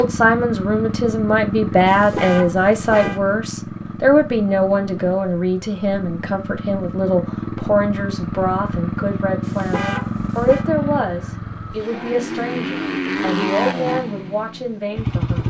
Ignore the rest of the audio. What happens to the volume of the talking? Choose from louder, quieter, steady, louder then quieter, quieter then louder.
quieter.